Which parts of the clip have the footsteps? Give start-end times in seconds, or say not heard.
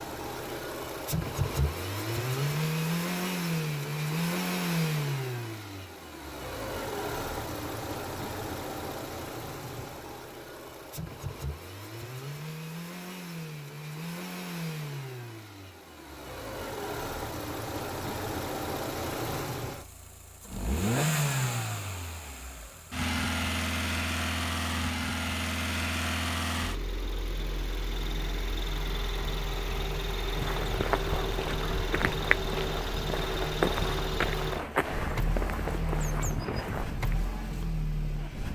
30.2-37.2.